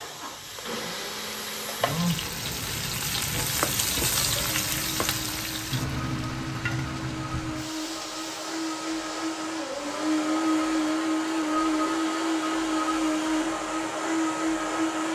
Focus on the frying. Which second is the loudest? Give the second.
4 s.